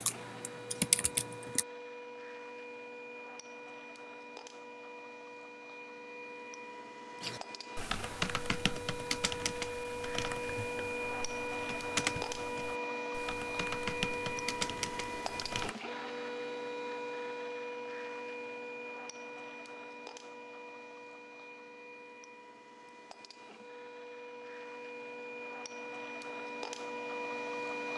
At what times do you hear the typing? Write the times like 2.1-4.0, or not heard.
0.0-1.6, 7.2-15.8.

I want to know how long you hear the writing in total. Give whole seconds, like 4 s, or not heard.
not heard.